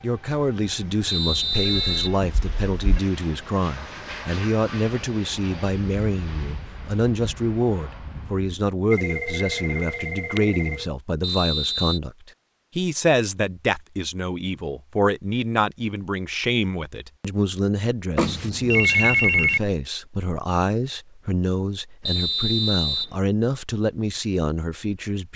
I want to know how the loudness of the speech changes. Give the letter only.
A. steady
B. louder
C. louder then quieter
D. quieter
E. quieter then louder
A.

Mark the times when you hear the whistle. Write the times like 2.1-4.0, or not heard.
1.1-2.2, 11.2-12.0, 22.1-23.1.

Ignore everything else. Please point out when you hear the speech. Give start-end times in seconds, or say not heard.
0.0-25.3.